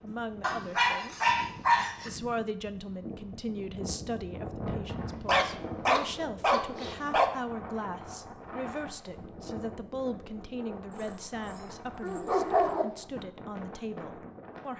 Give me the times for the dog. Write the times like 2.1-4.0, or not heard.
0.4-2.1, 5.2-7.2, 10.9-12.8.